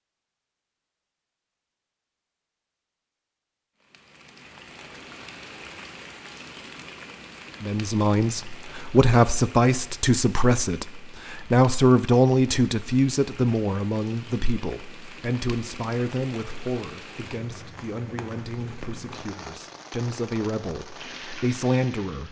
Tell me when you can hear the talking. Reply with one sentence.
The talking can be heard from 7.6 to 22.2 s.